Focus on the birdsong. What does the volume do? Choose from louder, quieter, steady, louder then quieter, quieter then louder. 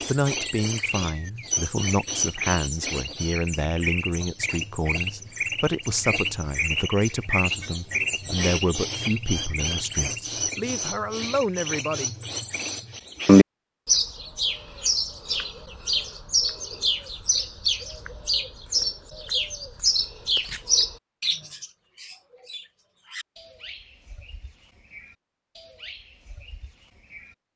louder then quieter.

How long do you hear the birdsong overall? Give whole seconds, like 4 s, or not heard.
27 s.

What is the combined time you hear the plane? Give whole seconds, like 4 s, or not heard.
not heard.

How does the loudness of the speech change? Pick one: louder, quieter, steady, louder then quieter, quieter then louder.
steady.